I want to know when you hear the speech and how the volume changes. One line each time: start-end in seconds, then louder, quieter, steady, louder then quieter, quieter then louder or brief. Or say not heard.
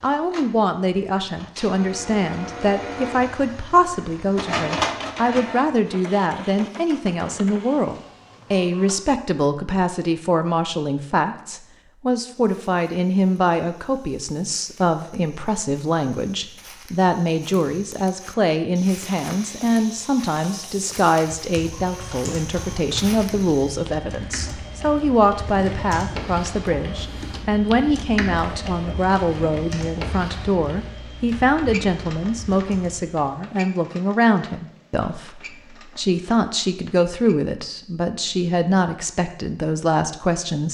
0.0-40.6 steady.